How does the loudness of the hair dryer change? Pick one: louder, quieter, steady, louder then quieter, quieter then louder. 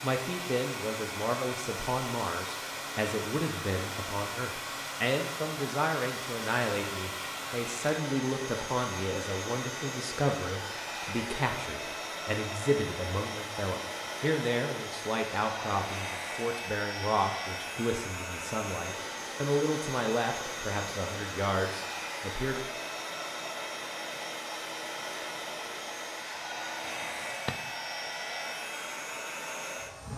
steady.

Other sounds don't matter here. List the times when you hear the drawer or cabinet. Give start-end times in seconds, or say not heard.
26.9-27.7.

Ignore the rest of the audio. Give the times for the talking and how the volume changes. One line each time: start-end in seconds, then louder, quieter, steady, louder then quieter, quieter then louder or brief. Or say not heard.
0.0-22.6 steady.